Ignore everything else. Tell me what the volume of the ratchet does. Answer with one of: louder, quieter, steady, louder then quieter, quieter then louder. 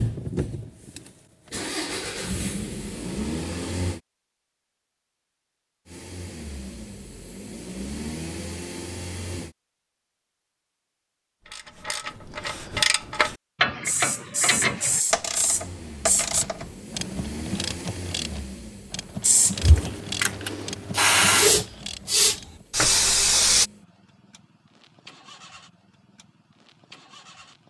quieter.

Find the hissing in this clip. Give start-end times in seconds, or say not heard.
13.8-16.4, 19.2-23.7.